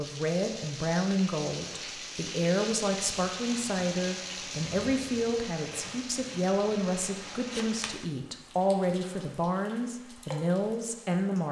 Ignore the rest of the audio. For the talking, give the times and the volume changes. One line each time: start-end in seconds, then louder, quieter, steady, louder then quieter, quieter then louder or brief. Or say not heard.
0.0-11.4 steady.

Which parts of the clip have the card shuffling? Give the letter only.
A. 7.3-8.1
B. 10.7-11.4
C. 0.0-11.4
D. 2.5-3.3
A.